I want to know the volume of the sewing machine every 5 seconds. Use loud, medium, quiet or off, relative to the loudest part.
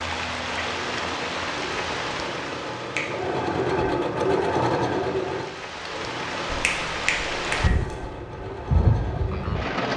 loud, medium.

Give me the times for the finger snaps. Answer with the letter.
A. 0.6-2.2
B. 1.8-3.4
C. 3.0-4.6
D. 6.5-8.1
D.